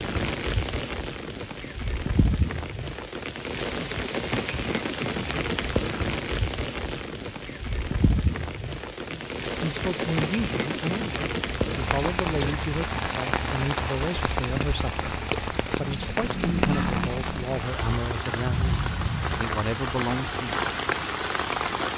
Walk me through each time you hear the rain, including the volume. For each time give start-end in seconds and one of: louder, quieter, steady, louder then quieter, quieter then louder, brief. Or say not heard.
0.0-21.9 steady.